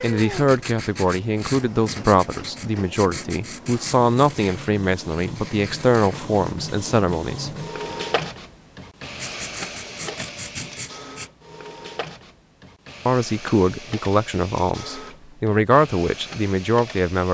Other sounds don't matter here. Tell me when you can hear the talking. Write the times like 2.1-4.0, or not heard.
0.0-8.0, 13.1-17.2.